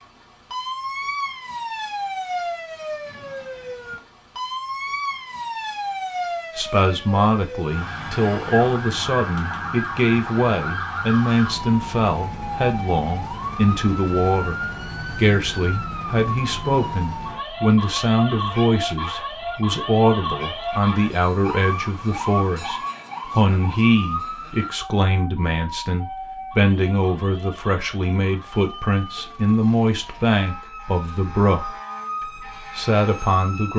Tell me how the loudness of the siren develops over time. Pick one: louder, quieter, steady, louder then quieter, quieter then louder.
quieter.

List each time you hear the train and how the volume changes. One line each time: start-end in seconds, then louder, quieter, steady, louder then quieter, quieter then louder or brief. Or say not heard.
not heard.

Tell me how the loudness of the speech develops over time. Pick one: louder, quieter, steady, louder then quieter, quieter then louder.
steady.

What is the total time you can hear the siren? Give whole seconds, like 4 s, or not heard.
34 s.